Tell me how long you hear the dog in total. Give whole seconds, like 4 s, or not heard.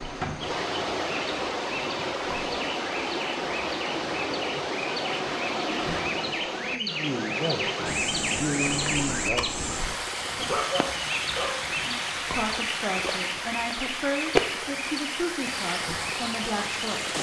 2 s.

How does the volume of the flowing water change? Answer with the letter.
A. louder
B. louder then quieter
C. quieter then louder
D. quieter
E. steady
E.